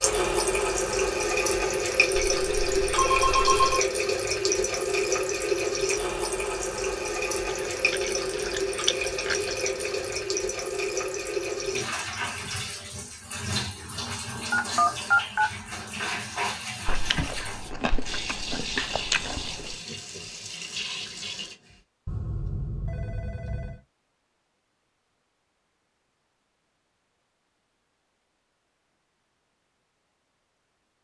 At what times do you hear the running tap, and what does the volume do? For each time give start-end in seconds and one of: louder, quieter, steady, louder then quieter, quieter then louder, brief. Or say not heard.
0.0-21.8 quieter.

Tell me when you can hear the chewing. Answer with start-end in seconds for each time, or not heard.
7.5-10.2, 16.9-19.8.